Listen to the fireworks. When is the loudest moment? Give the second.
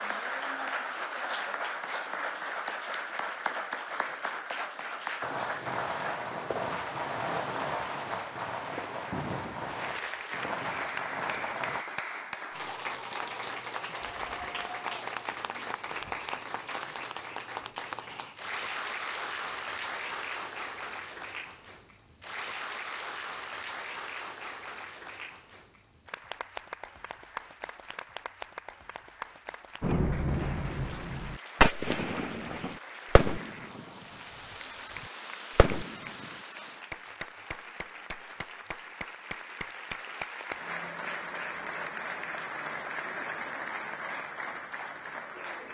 32 s.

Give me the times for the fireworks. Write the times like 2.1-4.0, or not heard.
5.2-11.8, 29.8-34.0, 35.0-36.4.